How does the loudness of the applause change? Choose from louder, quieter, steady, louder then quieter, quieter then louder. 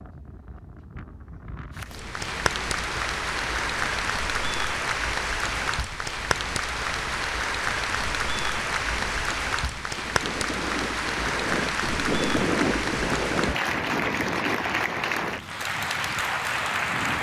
steady.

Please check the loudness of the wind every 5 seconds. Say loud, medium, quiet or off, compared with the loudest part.
quiet, quiet, loud, medium.